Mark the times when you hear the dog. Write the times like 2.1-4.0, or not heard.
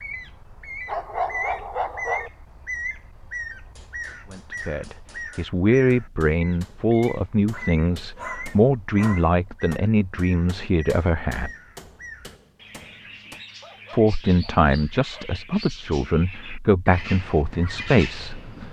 0.8-2.3, 7.5-9.3, 13.6-15.3.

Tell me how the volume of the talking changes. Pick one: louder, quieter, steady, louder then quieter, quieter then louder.
steady.